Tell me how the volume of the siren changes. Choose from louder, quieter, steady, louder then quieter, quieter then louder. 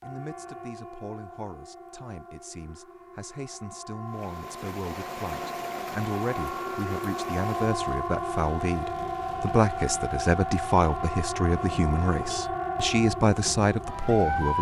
louder.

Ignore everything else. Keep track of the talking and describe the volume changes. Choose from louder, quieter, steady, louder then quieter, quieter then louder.
louder.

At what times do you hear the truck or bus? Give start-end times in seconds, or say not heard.
not heard.